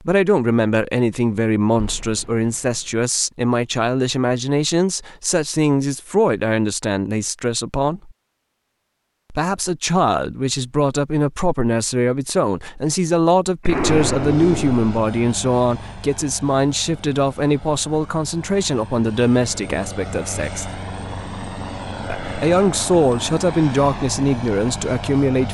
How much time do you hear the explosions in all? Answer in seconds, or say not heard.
2 s.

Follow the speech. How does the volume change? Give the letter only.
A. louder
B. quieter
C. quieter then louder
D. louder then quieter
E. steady
E.